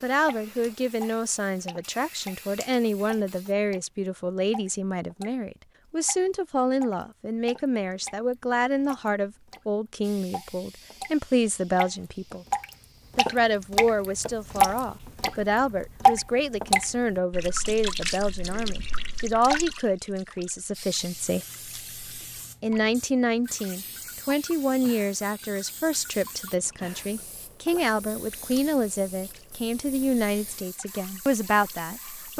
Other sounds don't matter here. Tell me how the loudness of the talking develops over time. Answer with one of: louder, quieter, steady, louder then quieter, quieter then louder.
steady.